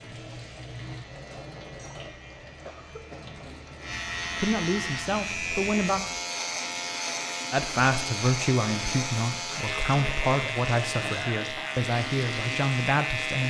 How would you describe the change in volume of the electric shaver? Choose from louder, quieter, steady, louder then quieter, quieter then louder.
louder.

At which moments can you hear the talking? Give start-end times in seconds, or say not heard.
4.3-6.0, 7.5-13.4.